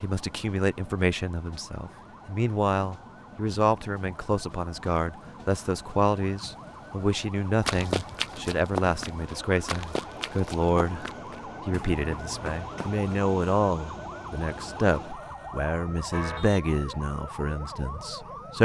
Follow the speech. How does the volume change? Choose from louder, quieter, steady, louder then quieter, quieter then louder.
steady.